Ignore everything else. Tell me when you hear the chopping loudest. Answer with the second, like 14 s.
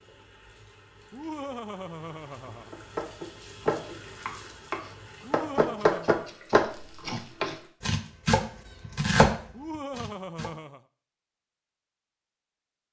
9 s.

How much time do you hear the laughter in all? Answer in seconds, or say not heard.
4 s.